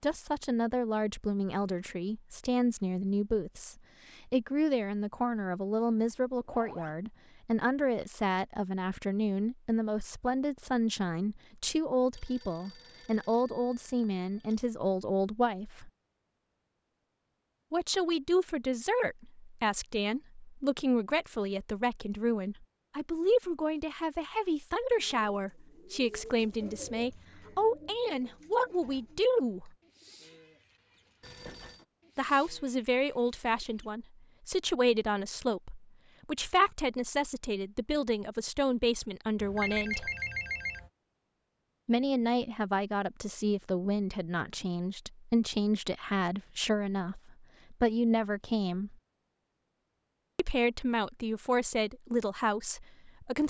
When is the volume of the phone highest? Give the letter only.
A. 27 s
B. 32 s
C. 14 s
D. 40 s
D.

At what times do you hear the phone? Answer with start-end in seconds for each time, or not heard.
12.2-14.6, 31.2-31.9, 39.4-40.9.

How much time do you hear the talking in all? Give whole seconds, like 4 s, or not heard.
46 s.